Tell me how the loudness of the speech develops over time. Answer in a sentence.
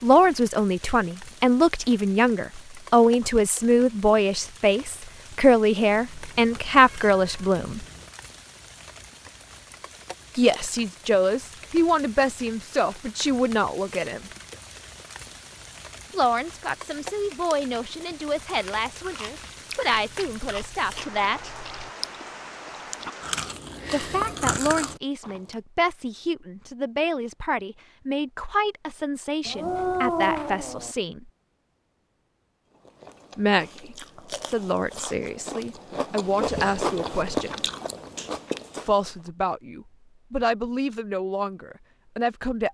The volume of the speech goes down.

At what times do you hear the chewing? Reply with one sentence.
You can hear the chewing from 18.6 to 25.6 s and from 32.8 to 39.3 s.